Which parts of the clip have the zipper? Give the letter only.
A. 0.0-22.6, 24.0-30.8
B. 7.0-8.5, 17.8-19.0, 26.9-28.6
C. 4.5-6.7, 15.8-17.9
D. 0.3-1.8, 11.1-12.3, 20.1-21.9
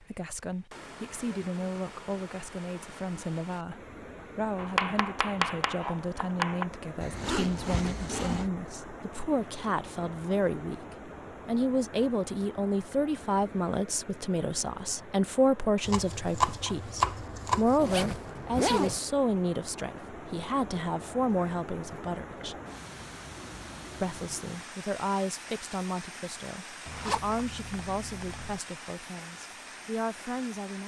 B.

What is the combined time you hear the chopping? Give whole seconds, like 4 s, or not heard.
4 s.